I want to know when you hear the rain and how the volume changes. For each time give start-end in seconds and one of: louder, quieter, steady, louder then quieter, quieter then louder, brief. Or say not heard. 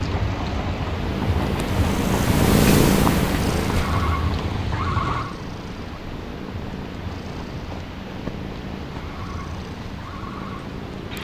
0.0-11.1 quieter.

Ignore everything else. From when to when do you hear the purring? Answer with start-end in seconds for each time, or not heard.
0.0-11.1.